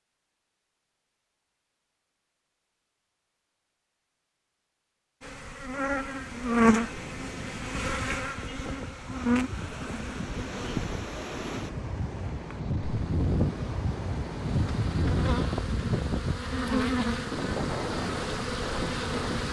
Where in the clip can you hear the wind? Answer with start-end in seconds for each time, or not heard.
6.1-19.4.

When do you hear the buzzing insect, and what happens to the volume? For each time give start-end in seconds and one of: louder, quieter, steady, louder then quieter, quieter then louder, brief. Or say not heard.
5.2-19.4 quieter then louder.